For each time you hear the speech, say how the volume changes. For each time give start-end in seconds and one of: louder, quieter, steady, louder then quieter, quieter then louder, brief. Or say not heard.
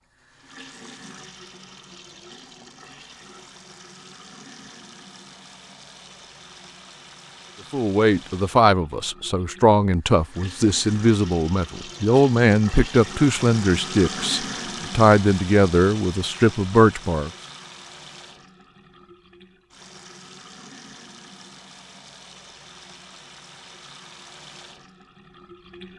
7.7-17.3 steady.